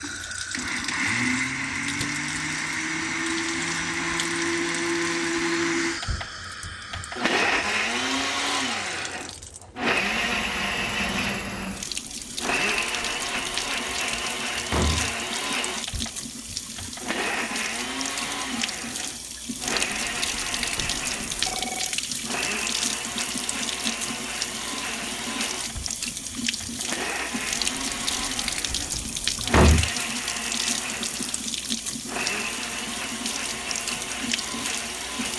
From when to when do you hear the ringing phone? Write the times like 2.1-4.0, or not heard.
20.8-22.0.